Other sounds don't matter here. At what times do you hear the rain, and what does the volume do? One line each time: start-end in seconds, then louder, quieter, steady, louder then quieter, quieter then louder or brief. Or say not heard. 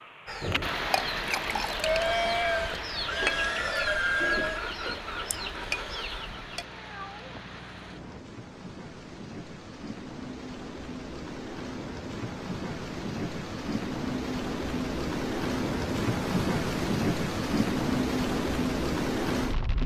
0.0-19.8 quieter then louder.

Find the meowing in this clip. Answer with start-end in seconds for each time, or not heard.
6.2-8.2.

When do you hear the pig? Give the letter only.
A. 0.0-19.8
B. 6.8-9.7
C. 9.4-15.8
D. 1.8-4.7
D.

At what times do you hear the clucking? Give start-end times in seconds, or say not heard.
0.2-6.7.